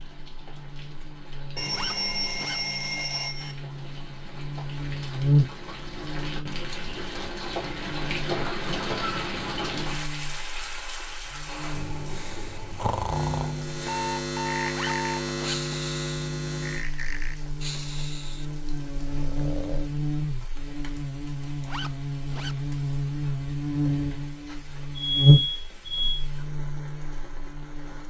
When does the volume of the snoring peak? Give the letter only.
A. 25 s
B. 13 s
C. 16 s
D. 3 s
B.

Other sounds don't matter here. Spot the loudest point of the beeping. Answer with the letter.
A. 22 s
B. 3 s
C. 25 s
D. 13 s
C.